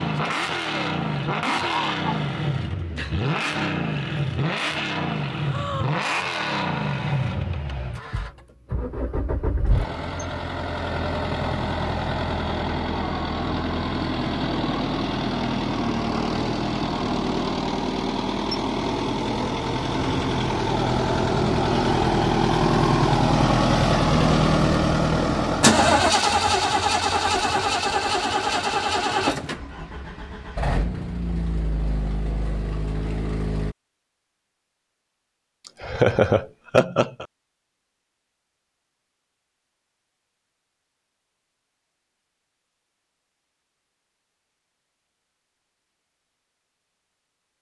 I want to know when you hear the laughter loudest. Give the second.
36 s.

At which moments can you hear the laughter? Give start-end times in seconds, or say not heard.
1.4-2.0, 35.8-37.2.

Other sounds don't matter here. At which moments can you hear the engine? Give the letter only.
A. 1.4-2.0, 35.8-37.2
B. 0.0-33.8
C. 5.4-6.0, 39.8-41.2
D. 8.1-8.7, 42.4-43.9
B.